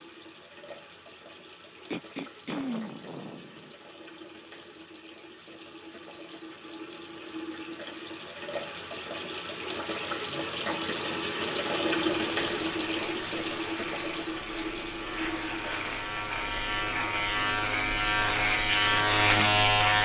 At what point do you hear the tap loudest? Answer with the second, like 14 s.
12 s.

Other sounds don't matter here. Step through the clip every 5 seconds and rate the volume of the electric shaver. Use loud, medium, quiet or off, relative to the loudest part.
off, off, quiet, loud.